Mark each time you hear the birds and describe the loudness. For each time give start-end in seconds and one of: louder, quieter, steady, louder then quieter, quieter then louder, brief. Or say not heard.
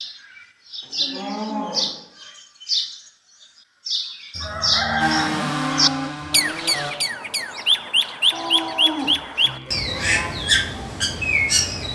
0.0-11.9 louder.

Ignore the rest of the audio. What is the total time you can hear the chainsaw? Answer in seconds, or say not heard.
2 s.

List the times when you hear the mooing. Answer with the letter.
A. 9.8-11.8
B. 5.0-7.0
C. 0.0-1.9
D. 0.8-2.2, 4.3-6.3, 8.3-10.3
D.